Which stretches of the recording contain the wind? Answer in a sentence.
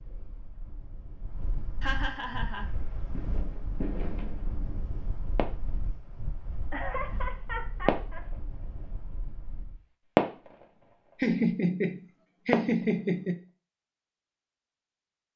The wind can be heard from 0.0 to 9.8 s.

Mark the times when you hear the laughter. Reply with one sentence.
You can hear the laughter from 1.8 to 2.6 s, from 6.7 to 8.2 s and from 11.2 to 13.4 s.